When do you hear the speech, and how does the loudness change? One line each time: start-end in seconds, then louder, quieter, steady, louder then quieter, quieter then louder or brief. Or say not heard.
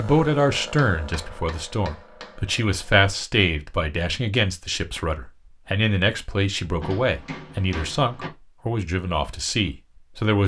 0.0-10.4 steady.